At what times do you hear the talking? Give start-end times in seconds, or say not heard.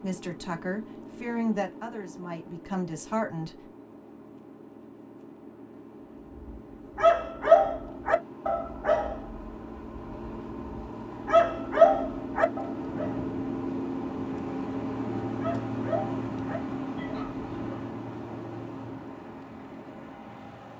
0.0-3.7.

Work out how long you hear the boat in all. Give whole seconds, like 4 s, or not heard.
21 s.